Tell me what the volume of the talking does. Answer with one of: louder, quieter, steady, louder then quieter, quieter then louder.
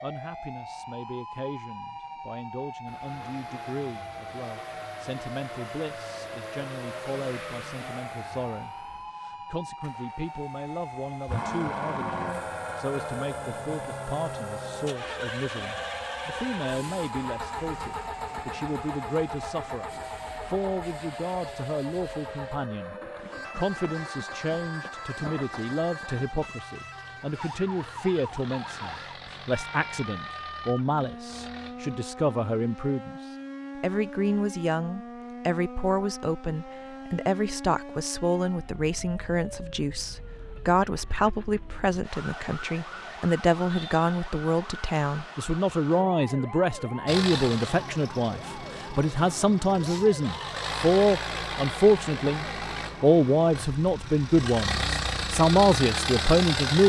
louder.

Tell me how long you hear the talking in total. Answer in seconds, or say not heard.
57 s.